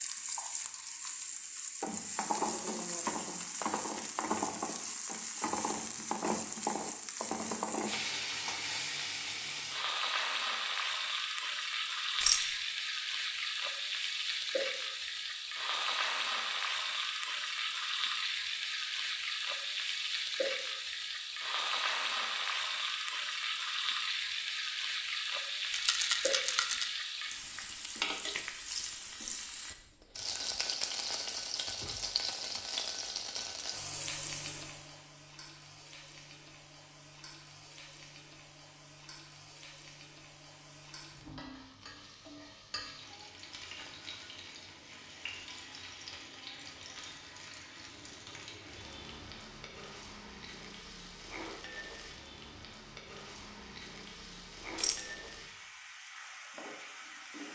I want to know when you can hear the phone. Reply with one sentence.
You can't hear the phone here.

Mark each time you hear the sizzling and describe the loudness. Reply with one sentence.
The sizzling can be heard from 0.0 to 57.4 s, getting quieter.